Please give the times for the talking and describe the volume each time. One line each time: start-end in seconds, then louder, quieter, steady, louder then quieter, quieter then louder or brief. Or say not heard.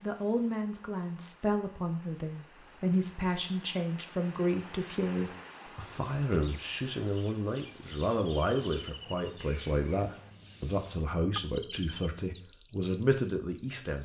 0.0-13.9 steady.